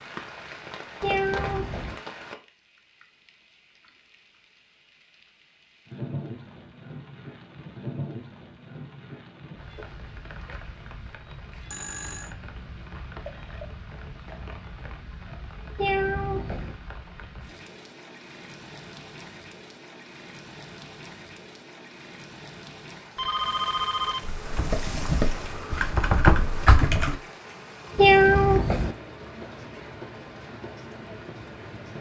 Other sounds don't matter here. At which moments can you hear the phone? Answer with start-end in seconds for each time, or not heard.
11.7-12.3, 23.1-24.3.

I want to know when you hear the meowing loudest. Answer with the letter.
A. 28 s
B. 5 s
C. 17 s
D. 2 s
A.